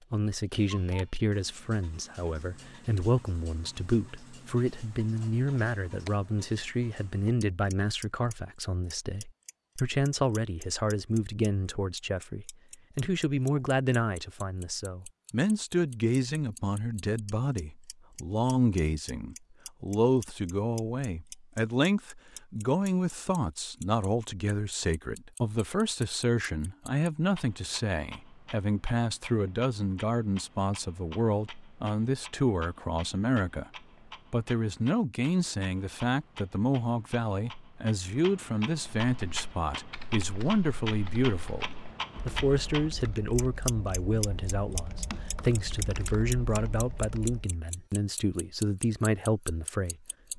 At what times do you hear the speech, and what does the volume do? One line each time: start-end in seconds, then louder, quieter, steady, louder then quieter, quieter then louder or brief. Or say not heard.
0.1-33.7 steady
34.3-50.3 steady.